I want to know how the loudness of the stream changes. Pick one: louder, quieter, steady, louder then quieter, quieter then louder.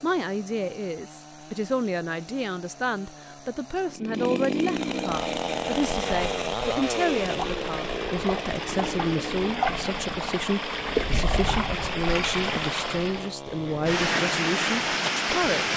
louder.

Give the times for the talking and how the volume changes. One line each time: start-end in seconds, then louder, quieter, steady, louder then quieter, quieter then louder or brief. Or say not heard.
0.0-15.7 steady.